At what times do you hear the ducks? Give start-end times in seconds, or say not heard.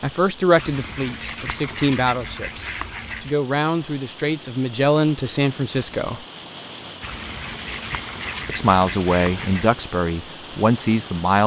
0.6-3.4, 7.0-9.8.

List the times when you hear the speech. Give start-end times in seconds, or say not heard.
0.0-6.2, 8.4-11.4.